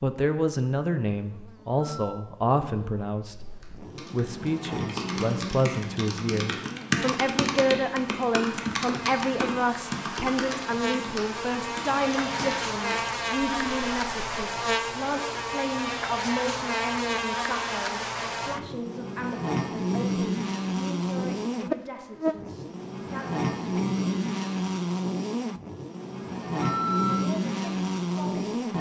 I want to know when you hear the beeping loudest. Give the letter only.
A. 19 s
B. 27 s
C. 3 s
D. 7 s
B.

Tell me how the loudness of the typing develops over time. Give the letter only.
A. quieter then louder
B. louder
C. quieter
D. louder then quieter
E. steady
D.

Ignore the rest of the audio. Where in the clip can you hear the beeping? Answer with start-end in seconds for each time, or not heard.
1.8-2.2, 26.6-27.2.